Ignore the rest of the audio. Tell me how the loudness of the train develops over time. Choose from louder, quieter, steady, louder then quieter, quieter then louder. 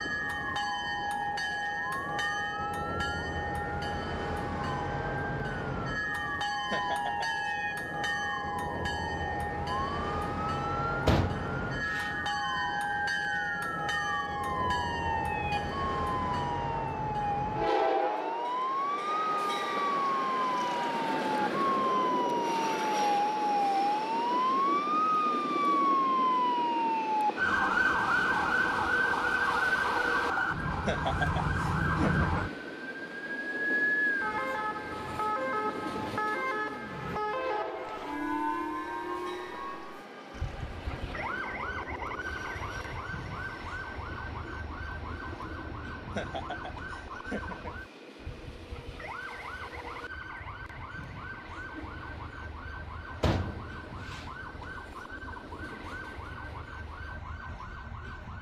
quieter.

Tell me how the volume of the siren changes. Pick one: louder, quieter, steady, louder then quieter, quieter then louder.
louder then quieter.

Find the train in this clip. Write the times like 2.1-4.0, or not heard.
0.0-58.3.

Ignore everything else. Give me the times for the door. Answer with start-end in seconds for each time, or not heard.
11.1-12.1, 53.2-54.2.